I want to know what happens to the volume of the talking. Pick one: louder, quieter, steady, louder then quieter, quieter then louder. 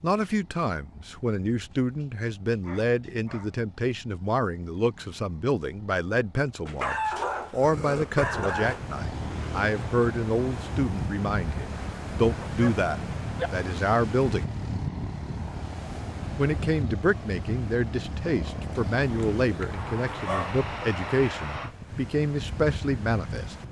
steady.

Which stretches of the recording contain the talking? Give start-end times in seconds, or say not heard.
0.0-14.5, 16.4-23.6.